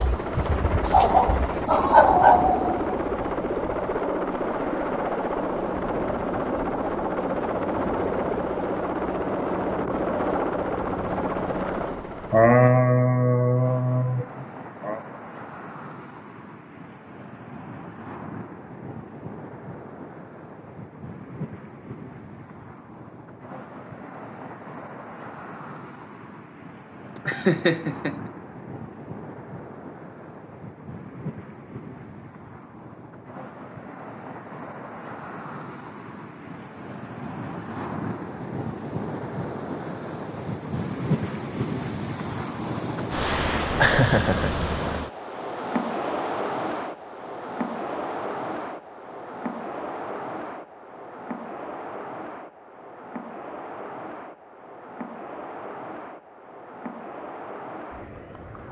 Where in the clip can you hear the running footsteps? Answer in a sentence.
The running footsteps can't be heard in this clip.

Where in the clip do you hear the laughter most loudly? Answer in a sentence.
The volume of the laughter peaks at 13 seconds.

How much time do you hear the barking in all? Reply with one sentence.
You can hear the barking for 3 seconds altogether.